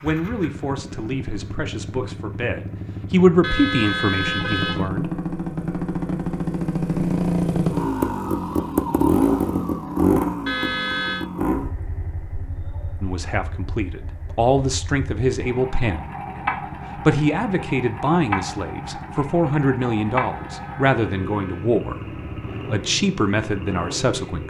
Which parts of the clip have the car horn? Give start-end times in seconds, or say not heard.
3.4-4.9, 10.4-11.2, 20.3-21.8.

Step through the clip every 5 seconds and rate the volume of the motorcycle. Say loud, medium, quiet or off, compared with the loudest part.
medium, loud, medium, medium, medium.